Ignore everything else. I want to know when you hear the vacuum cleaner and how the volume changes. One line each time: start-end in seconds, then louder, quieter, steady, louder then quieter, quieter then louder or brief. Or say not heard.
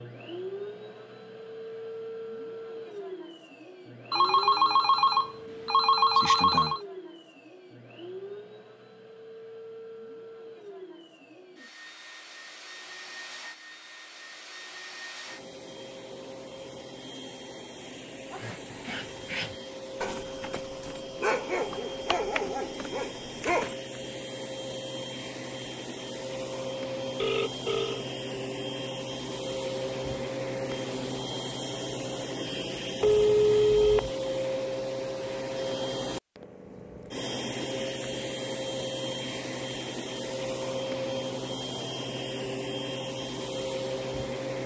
0.0-44.6 louder.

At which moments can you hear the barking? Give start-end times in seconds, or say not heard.
18.3-23.8.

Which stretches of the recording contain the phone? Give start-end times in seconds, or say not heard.
4.1-6.8, 27.1-28.1, 33.0-34.1.